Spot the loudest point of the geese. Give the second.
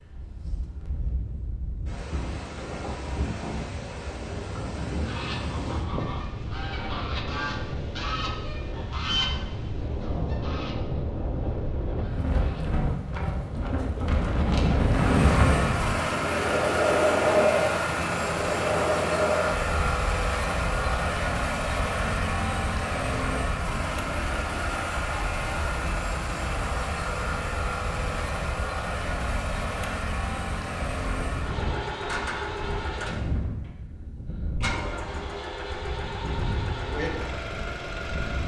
9 s.